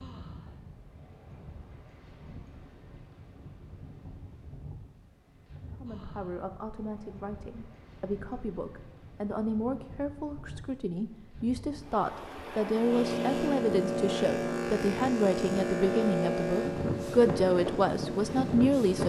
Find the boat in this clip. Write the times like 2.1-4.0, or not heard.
12.7-19.0.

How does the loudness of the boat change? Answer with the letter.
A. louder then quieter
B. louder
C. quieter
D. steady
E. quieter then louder
C.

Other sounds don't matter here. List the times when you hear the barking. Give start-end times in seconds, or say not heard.
not heard.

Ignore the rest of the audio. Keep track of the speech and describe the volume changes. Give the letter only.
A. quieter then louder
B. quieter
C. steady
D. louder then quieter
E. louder
E.